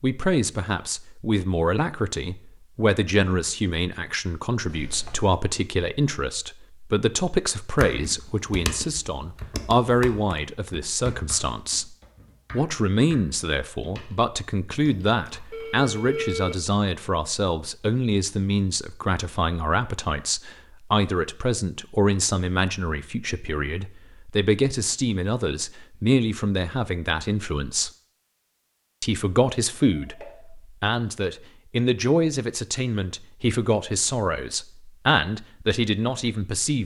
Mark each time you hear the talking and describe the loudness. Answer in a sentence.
You can hear the talking from 0.0 to 11.8 s, at a steady volume; from 12.5 to 27.9 s, at a steady volume; and from 29.0 to 36.8 s, at a steady volume.